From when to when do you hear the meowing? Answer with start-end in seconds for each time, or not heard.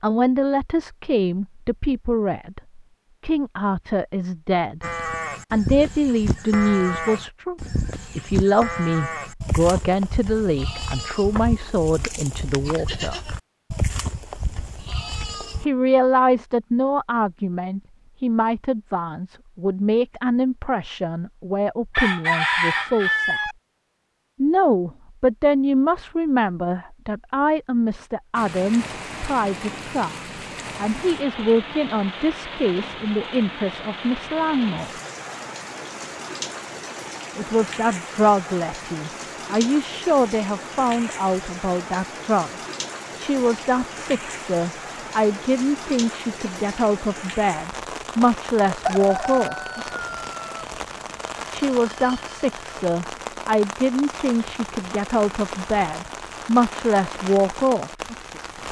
not heard.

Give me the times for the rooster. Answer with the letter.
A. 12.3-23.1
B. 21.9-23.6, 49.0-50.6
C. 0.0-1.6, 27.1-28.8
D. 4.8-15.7
B.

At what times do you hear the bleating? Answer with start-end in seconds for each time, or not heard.
4.8-15.7.